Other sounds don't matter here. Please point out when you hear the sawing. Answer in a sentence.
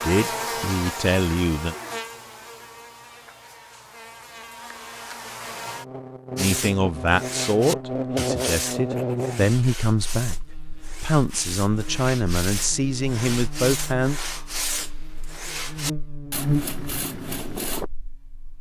The sawing can be heard from 6.3 to 17.9 s.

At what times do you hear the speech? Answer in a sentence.
You can hear the speech from 0.0 to 1.8 s and from 6.3 to 14.2 s.